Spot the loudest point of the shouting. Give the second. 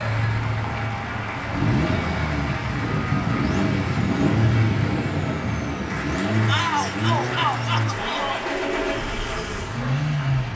7 s.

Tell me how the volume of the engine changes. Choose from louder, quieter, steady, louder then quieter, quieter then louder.
steady.